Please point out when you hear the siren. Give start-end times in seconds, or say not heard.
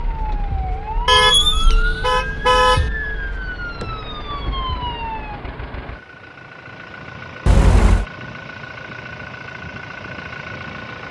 0.0-5.4.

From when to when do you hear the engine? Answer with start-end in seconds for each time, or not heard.
0.0-11.0.